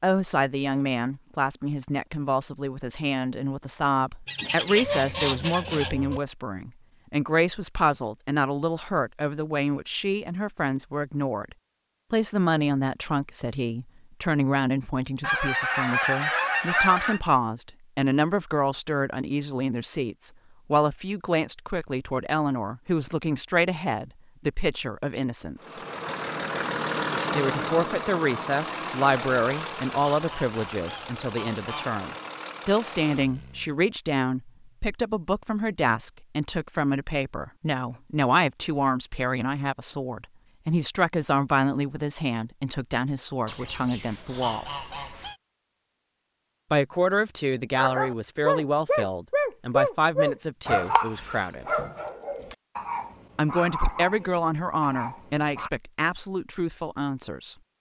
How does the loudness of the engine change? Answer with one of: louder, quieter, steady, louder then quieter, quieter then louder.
quieter.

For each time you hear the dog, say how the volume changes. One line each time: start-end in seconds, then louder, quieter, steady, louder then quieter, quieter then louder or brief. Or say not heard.
47.8-55.7 quieter.